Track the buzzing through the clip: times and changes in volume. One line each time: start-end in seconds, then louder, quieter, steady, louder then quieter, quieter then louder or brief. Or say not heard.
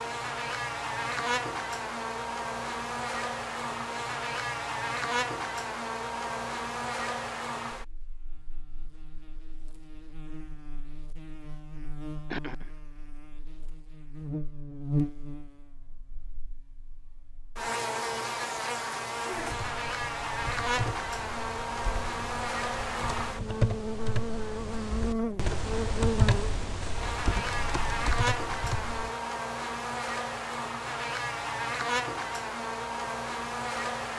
0.0-34.1 quieter then louder.